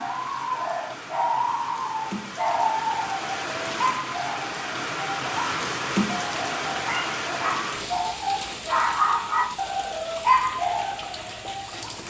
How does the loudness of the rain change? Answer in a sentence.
The volume of the rain goes up, then down.